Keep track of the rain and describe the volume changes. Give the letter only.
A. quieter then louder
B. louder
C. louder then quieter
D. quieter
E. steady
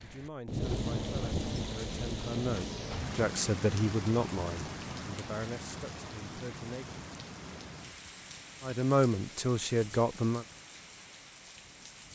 D.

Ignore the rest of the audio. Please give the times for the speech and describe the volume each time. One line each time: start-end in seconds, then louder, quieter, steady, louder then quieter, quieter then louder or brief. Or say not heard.
0.0-7.0 louder then quieter
8.6-10.4 brief.